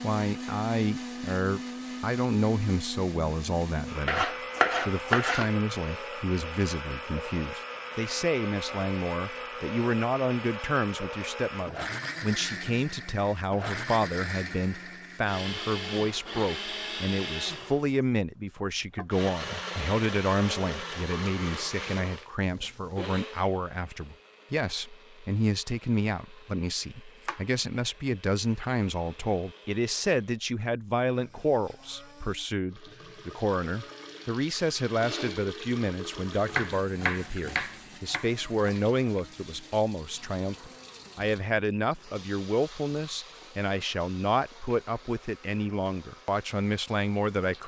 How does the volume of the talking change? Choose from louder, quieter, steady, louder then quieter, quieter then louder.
steady.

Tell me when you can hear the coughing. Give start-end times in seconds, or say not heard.
not heard.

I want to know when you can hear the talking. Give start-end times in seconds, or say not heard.
0.0-47.6.